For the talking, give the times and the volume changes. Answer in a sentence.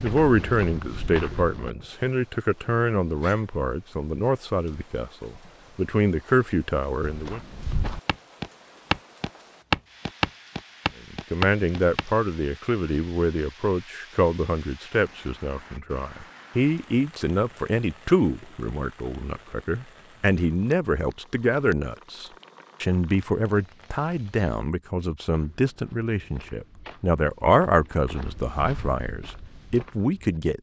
You can hear the talking from 0.0 to 7.4 s, getting quieter then louder; and from 11.1 to 30.5 s, at a steady volume.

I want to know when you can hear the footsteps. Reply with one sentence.
The footsteps can be heard from 0.0 to 1.7 s, from 7.0 to 12.1 s and from 25.3 to 30.4 s.